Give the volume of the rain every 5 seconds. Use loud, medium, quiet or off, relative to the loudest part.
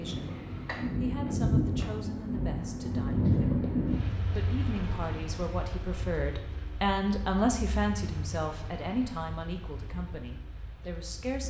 loud, quiet, quiet.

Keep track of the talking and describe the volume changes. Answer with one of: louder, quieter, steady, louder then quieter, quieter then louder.
louder then quieter.